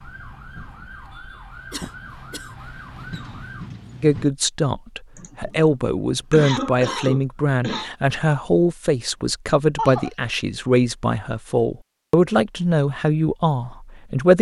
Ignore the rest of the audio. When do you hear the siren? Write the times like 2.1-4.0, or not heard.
0.0-3.8.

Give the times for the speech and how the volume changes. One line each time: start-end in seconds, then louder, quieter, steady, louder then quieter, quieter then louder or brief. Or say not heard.
4.0-14.3 steady.